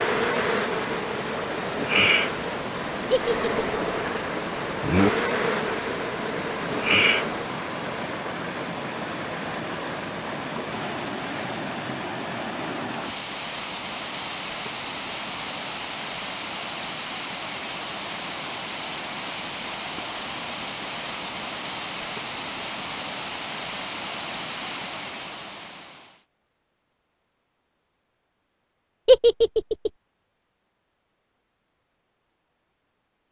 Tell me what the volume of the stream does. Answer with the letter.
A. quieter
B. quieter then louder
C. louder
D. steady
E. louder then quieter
D.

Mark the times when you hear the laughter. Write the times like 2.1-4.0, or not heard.
3.1-3.6, 29.1-29.9.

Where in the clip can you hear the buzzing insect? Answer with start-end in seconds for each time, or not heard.
0.0-7.5.